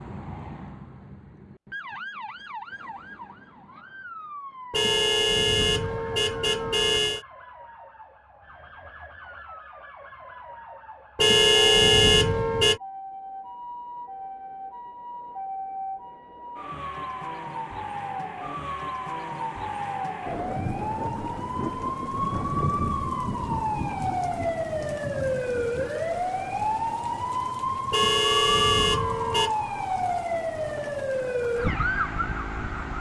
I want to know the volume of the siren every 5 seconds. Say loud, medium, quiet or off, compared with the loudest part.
quiet, quiet, quiet, medium, loud, loud, loud.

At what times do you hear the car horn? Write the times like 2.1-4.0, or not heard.
4.7-7.2, 11.2-12.8, 27.9-29.6.